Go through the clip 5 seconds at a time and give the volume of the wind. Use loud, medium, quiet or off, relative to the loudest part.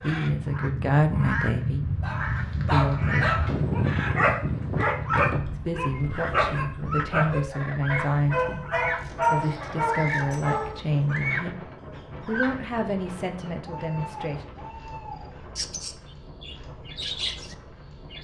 loud, medium, quiet, quiet.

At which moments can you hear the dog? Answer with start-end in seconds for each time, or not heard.
2.0-11.2.